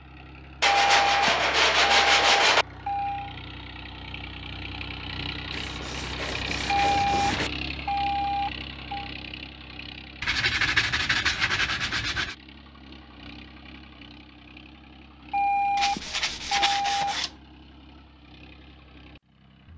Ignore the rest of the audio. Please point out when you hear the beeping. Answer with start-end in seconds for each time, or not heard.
0.6-3.4, 6.7-9.1, 15.3-17.1.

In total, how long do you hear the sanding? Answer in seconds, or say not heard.
8 s.